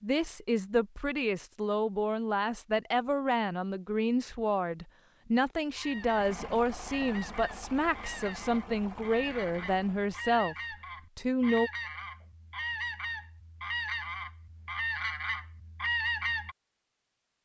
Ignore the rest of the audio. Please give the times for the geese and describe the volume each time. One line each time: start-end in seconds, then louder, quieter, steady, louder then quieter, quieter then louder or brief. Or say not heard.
5.8-16.6 louder.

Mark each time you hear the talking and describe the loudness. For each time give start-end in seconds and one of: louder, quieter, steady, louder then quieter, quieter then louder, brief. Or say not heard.
0.0-11.7 steady.